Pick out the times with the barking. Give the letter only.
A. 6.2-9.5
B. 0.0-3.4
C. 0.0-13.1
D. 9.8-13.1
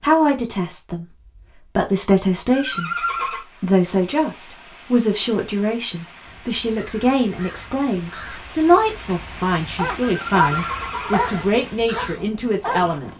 D.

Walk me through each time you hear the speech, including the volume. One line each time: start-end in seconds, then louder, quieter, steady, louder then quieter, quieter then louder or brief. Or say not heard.
0.0-13.1 steady.